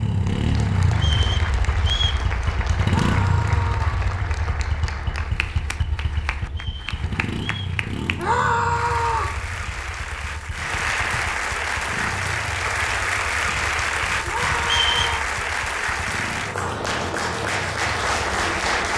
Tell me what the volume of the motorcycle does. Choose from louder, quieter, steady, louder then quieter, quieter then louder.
quieter.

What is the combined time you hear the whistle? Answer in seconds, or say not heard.
3 s.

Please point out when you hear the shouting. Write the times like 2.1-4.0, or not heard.
2.9-4.0, 8.2-9.3, 14.2-15.3.